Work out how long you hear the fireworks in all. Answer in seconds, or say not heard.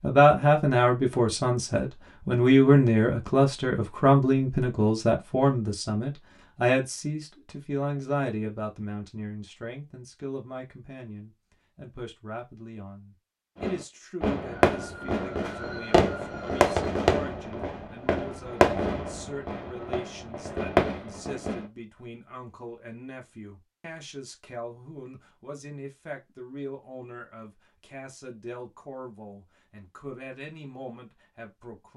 8 s.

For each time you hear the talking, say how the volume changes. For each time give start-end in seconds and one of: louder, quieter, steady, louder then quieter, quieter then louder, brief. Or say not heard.
0.0-31.9 quieter.